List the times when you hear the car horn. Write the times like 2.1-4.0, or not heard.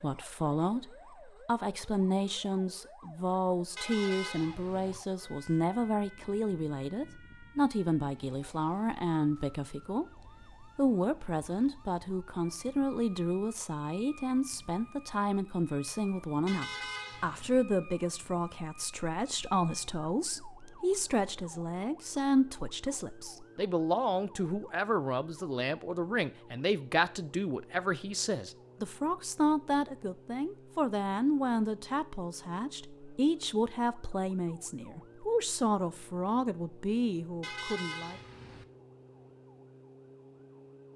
3.8-5.0, 16.4-17.6, 37.4-38.6.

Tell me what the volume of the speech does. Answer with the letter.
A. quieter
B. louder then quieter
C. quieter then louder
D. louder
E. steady
E.